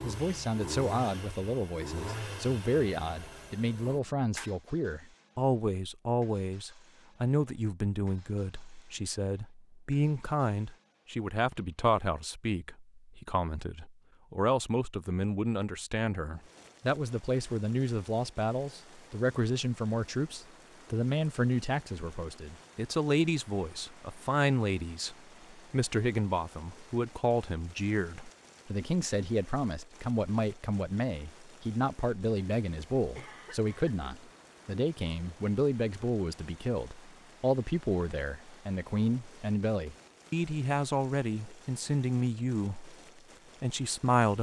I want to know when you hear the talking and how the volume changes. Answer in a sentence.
The talking can be heard from 0.0 to 43.0 s, at a steady volume; and briefly from 43.6 to 44.3 s.